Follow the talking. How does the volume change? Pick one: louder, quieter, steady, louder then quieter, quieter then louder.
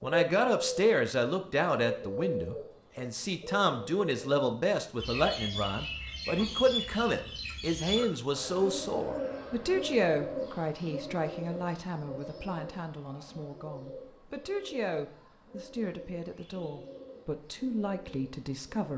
quieter.